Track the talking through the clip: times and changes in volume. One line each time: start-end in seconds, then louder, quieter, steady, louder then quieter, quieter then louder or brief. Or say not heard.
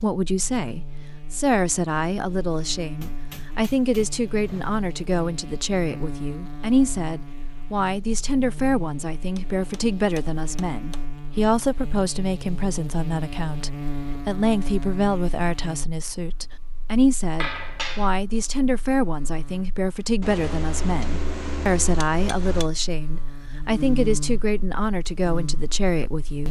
0.0-26.4 steady.